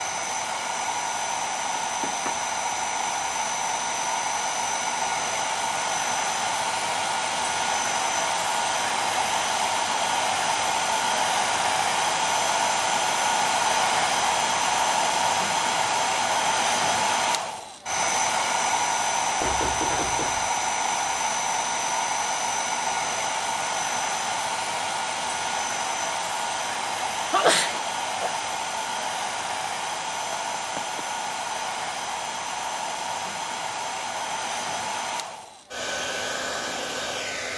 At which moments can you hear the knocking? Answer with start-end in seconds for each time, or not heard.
1.8-2.4, 19.4-20.5, 30.3-31.0.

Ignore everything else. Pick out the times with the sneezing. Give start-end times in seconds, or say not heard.
27.3-28.3.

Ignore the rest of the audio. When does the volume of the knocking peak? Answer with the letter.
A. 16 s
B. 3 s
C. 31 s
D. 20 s
D.